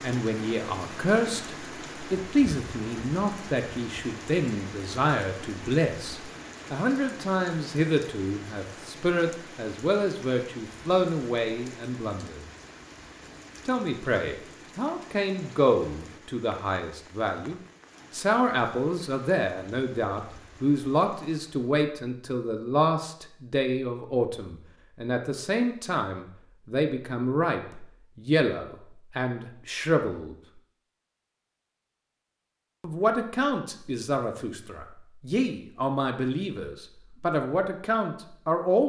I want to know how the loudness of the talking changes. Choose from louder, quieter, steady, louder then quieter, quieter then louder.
steady.